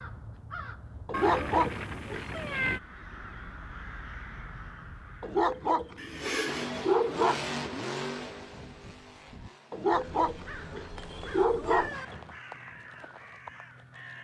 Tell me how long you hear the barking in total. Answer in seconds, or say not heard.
7 s.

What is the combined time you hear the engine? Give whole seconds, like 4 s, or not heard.
5 s.